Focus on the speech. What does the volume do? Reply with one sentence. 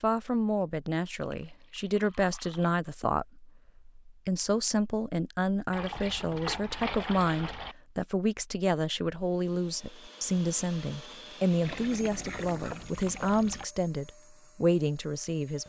The volume of the speech stays about the same.